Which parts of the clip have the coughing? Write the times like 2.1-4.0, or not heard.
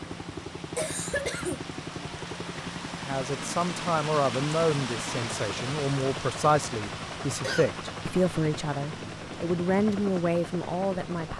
0.8-1.6, 7.2-7.7.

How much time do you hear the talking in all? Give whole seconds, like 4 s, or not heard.
8 s.